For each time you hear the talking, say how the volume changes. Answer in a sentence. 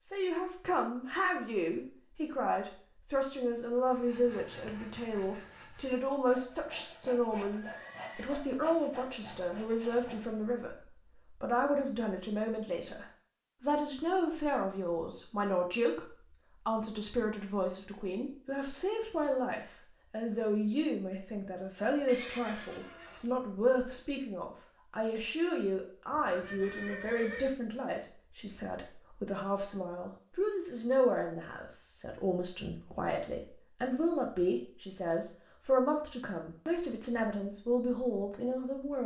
You can hear the talking from 0.0 to 39.0 s, at a steady volume.